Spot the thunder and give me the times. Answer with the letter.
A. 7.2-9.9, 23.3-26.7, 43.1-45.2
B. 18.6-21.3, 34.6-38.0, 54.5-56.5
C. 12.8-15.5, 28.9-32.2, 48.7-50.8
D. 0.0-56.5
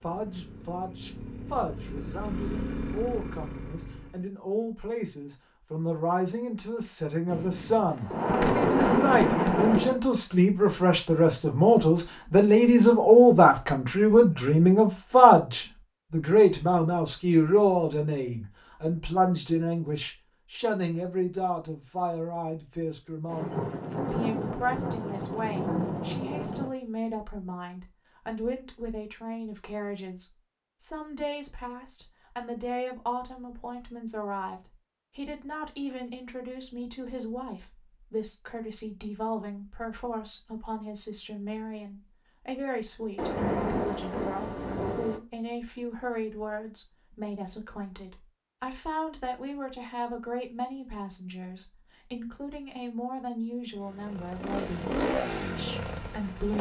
A.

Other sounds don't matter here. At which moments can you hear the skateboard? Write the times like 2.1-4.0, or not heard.
not heard.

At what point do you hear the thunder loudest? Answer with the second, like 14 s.
9 s.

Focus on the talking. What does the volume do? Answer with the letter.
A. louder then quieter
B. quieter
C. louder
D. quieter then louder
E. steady
A.